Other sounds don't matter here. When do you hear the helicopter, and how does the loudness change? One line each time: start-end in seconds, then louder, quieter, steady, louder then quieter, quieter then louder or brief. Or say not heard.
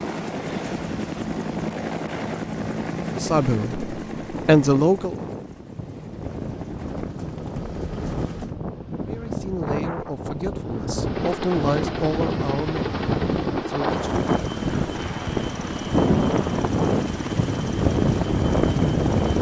0.0-8.6 quieter then louder
10.9-19.3 steady.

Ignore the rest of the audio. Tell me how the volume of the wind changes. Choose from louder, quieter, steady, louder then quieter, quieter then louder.
louder.